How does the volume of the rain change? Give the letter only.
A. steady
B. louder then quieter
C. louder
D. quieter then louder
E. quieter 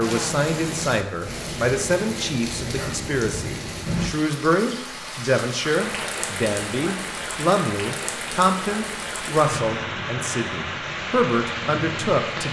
A.